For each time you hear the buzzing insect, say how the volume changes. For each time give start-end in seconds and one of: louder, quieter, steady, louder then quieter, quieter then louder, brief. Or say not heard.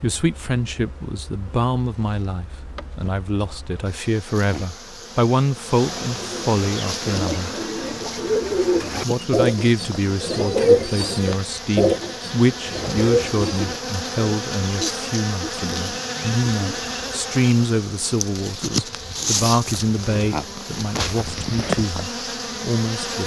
0.0-23.2 louder.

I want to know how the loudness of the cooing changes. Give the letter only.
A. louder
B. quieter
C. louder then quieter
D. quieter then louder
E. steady
C.